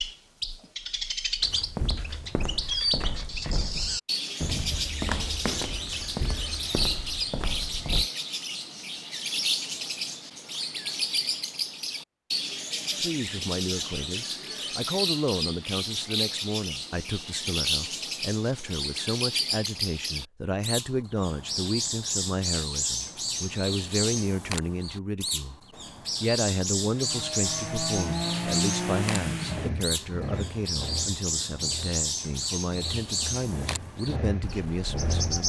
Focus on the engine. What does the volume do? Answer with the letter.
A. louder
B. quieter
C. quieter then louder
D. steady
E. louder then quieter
C.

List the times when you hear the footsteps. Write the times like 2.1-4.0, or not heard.
1.4-8.1.